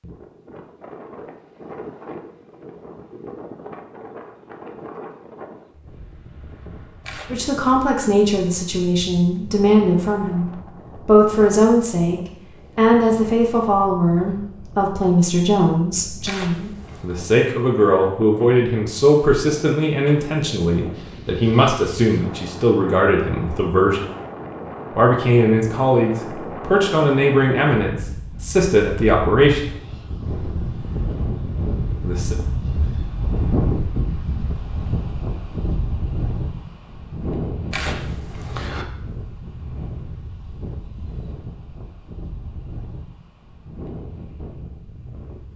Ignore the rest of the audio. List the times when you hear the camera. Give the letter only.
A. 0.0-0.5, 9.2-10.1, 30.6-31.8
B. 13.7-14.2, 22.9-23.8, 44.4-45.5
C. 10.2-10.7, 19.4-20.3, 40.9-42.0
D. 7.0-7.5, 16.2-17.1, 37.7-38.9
D.